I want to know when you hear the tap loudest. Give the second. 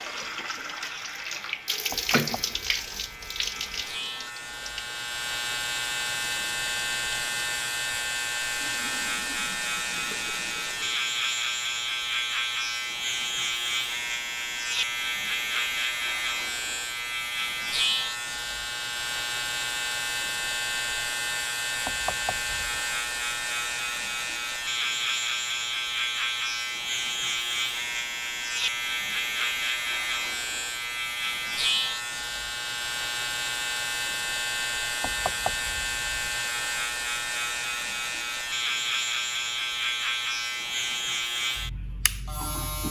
2 s.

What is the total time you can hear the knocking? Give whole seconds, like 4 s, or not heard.
4 s.